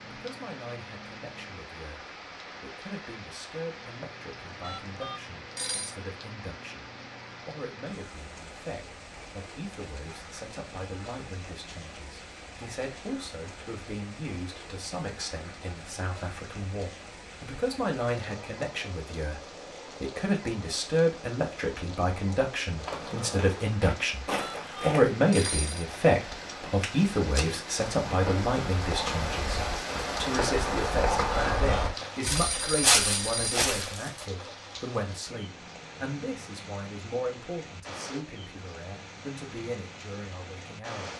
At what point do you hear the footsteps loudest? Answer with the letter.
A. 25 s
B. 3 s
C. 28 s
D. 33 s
D.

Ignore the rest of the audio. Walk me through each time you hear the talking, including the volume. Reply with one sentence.
You can hear the talking from 0.0 to 41.1 s, getting louder then quieter.